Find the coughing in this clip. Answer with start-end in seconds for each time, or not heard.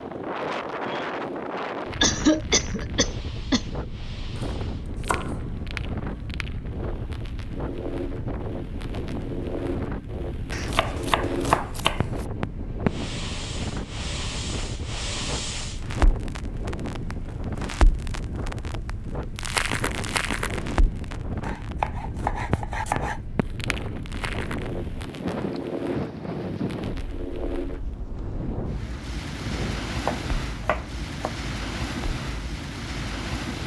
2.0-3.6.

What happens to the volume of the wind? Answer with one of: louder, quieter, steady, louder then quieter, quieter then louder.
steady.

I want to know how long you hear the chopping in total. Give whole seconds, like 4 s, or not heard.
7 s.